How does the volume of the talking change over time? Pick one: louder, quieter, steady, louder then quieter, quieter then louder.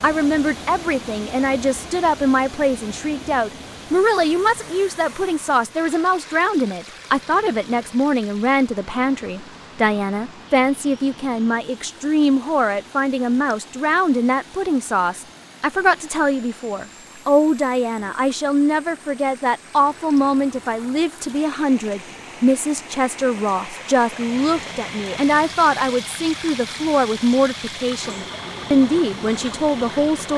steady.